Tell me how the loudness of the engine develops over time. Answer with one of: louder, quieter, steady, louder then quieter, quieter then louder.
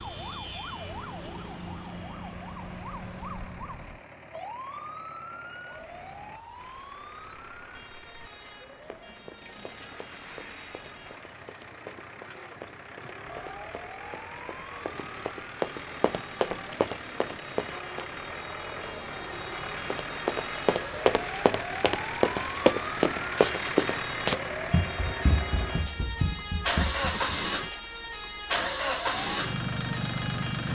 louder.